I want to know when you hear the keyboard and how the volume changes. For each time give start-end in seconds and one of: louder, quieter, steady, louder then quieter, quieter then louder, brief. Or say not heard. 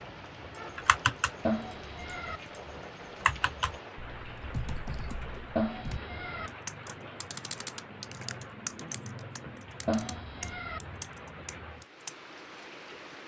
0.5-12.2 quieter.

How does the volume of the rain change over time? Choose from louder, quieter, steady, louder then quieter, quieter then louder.
steady.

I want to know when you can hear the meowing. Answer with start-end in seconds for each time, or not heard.
1.4-2.4, 5.5-6.5, 9.8-10.8.